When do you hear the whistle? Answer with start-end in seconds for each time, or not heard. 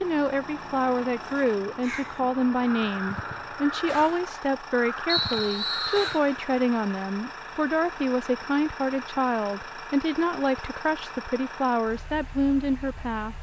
5.0-6.2.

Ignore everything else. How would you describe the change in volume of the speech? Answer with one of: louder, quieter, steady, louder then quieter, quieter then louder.
steady.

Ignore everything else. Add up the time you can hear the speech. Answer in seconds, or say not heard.
13 s.